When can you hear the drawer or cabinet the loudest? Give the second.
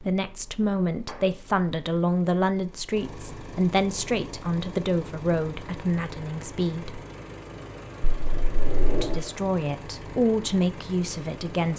9 s.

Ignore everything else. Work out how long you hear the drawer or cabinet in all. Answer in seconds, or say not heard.
2 s.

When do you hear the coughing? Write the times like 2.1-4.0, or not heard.
not heard.